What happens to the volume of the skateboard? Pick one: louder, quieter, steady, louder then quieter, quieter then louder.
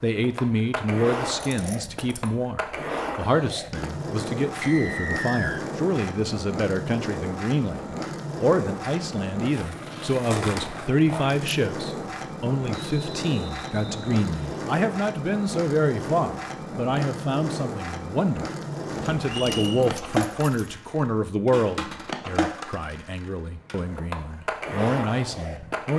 steady.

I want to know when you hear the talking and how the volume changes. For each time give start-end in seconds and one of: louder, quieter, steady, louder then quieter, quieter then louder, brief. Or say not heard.
0.0-25.9 steady.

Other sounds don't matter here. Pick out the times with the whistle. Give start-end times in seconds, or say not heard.
4.6-5.7, 12.7-14.7, 19.4-19.9.